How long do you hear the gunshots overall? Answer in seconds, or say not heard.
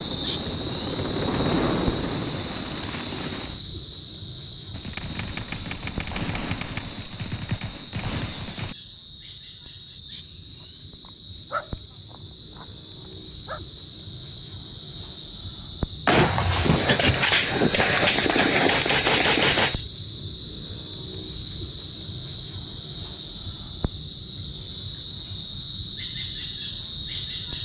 8 s.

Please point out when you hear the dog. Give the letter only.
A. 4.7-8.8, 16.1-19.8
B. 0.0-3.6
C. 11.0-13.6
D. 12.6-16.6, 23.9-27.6
C.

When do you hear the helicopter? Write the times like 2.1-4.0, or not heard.
0.0-3.6.